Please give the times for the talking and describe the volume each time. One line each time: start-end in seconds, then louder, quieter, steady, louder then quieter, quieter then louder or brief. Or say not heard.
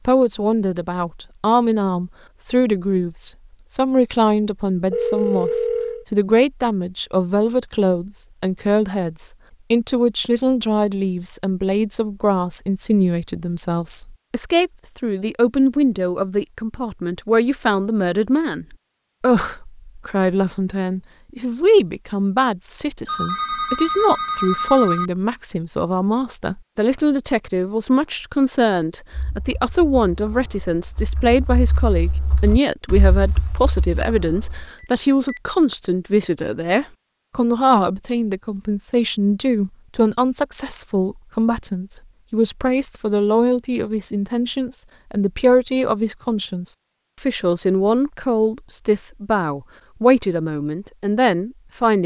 0.1-52.0 steady.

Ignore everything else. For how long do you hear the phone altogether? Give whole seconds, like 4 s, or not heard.
4 s.